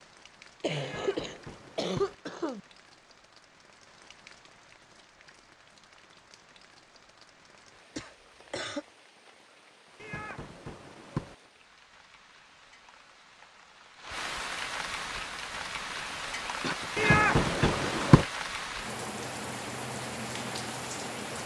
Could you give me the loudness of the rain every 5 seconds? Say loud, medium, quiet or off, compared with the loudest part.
quiet, quiet, medium, loud, loud.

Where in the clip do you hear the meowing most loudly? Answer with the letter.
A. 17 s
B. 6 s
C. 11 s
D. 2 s
A.